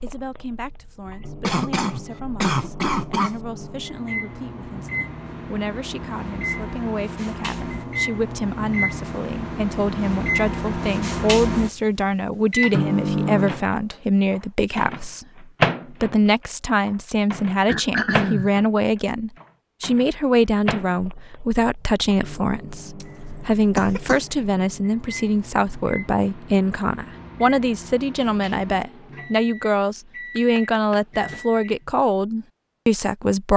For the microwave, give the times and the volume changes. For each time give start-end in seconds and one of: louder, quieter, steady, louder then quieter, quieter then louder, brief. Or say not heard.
0.0-31.9 louder then quieter.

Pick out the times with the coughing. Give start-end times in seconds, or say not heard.
1.4-3.4, 17.6-18.5, 23.0-24.2.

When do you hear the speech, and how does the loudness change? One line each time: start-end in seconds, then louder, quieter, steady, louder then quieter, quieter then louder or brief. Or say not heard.
0.0-33.5 louder.